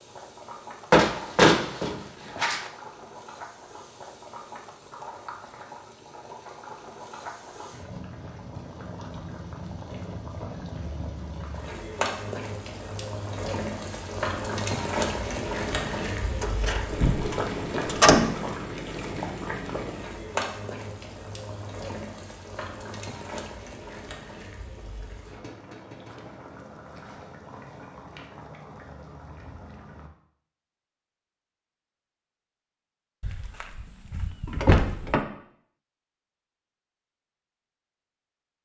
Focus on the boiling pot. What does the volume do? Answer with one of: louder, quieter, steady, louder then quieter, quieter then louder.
louder then quieter.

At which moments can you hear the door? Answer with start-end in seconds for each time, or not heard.
0.9-2.6, 16.4-18.4, 33.2-35.2.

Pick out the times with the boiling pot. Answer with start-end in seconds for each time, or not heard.
0.0-30.1.